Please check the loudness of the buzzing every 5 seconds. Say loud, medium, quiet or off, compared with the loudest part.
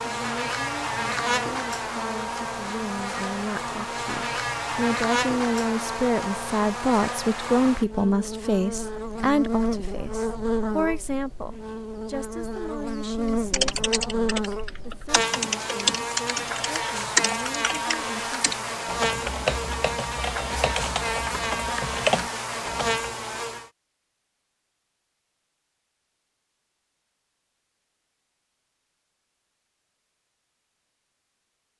loud, loud, loud, loud, loud, off, off.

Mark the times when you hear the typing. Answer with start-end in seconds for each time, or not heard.
13.5-23.1.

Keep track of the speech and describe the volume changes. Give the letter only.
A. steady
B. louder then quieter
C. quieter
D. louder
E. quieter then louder
B.